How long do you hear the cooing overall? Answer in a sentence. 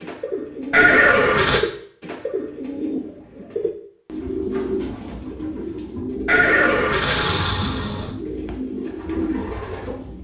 You can hear the cooing for 10 seconds altogether.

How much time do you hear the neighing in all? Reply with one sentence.
The neighing can be heard for 3 seconds in total.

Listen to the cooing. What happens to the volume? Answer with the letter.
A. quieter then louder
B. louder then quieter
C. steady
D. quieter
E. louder
C.